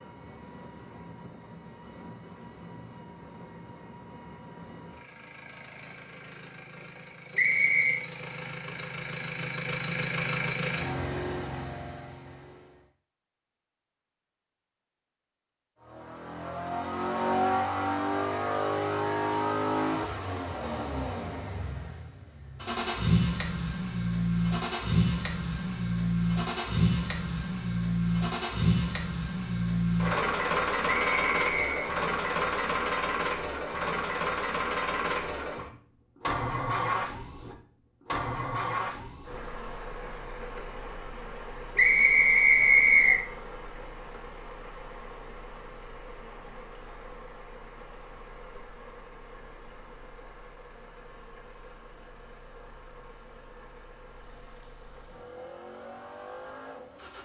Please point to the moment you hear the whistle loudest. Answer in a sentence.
The loudest moment of the whistle is at 43 seconds.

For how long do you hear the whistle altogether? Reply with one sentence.
The whistle can be heard for 3 seconds in total.